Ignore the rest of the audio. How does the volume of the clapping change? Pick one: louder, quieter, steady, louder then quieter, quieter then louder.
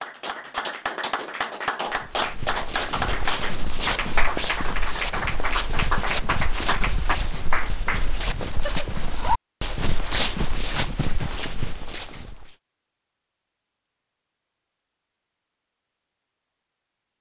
steady.